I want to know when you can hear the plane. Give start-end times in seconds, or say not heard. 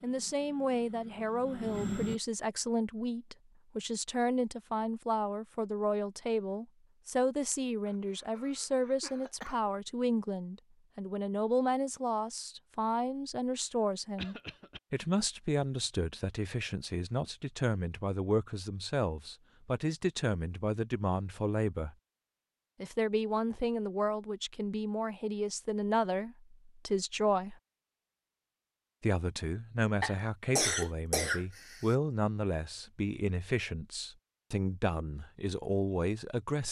0.0-2.2.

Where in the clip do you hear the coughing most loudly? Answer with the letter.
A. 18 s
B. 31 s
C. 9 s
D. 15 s
B.